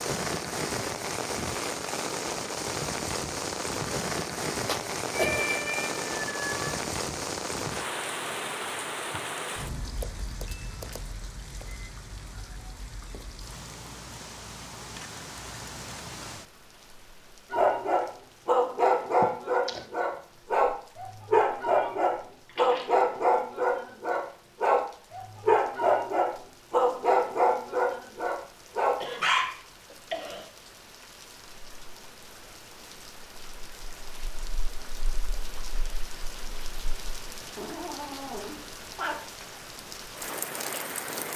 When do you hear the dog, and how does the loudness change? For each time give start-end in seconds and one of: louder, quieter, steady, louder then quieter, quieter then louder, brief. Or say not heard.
17.5-29.4 steady.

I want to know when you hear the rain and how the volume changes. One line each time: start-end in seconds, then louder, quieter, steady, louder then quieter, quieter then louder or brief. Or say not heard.
0.0-41.3 quieter then louder.